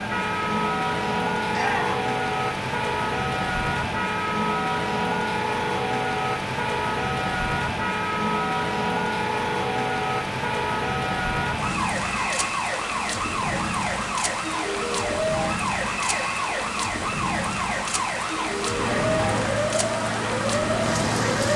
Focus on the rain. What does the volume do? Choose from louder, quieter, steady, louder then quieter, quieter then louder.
steady.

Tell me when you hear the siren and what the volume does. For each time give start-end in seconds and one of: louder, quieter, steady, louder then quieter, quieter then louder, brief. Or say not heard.
0.0-21.5 steady.